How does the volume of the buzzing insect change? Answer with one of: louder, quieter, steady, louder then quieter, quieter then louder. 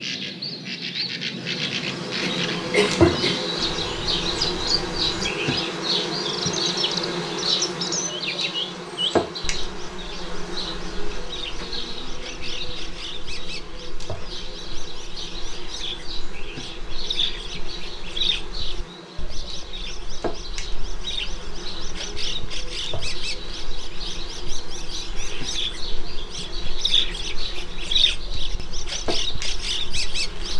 quieter.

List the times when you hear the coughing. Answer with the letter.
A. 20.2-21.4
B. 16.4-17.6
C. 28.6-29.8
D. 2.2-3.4
D.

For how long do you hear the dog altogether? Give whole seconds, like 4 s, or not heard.
not heard.